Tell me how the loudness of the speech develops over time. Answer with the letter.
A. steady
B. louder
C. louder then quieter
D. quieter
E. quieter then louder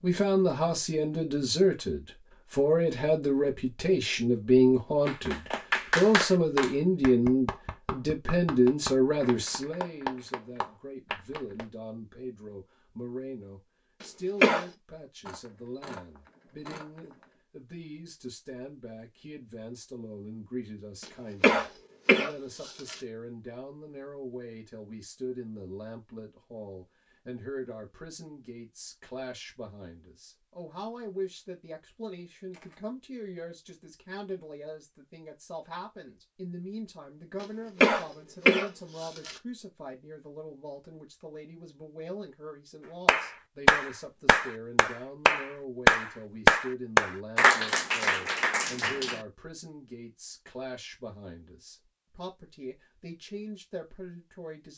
D.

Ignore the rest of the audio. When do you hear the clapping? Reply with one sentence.
You can hear the clapping from 5.0 to 11.7 s and from 43.0 to 49.2 s.